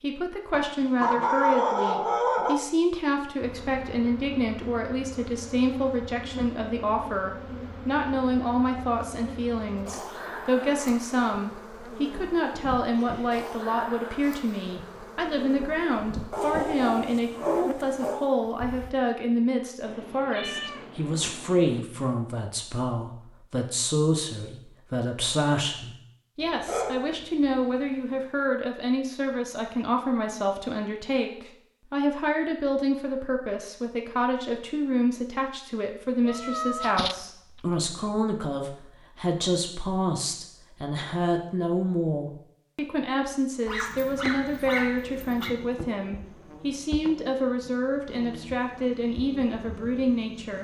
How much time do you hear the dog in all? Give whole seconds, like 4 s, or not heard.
7 s.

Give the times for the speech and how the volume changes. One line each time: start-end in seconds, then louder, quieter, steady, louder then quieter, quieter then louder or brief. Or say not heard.
0.0-50.5 steady.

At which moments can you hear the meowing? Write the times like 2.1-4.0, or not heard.
19.9-21.9, 36.2-37.9.